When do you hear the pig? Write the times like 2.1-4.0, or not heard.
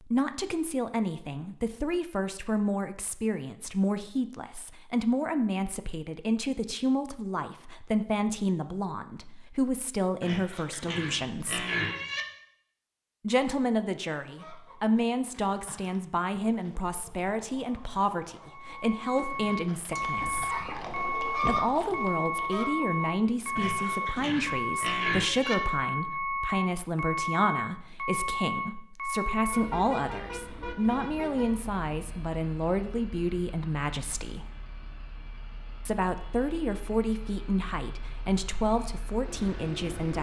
10.2-12.2, 23.6-25.6.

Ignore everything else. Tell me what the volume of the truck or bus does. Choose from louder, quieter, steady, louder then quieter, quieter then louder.
quieter.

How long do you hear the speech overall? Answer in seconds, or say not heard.
36 s.